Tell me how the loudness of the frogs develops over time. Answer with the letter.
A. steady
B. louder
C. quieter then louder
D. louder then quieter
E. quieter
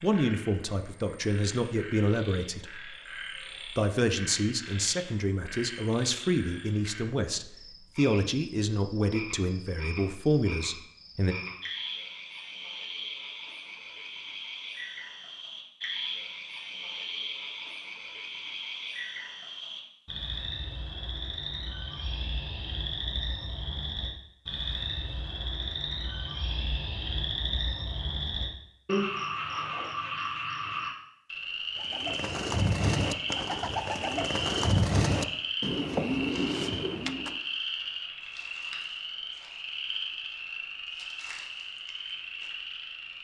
B.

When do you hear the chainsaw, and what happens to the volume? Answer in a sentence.
The chainsaw can't be heard in this clip.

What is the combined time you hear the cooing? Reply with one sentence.
You can hear the cooing for 6 seconds altogether.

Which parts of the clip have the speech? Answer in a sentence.
The speech can be heard from 0.0 to 3.0 s and from 3.8 to 11.3 s.